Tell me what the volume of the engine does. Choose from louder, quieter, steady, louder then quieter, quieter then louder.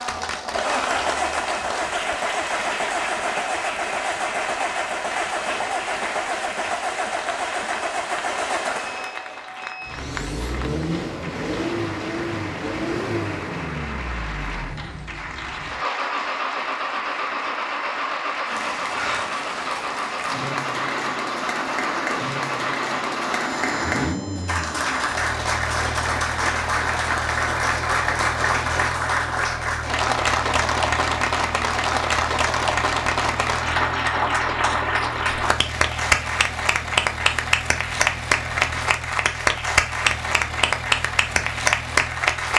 quieter.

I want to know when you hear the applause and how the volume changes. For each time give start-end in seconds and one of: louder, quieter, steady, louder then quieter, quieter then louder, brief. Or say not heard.
0.0-42.5 louder.